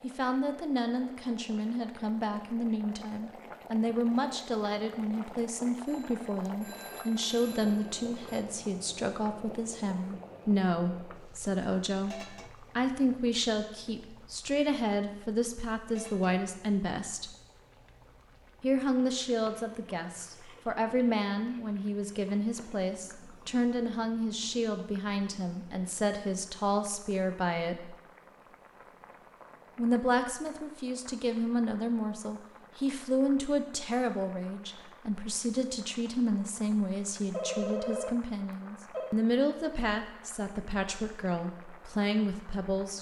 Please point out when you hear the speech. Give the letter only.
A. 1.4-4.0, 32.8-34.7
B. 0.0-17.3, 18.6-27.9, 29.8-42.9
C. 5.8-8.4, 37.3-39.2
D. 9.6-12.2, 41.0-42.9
B.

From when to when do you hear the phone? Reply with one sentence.
You can hear the phone from 5.8 to 8.4 s and from 37.3 to 39.2 s.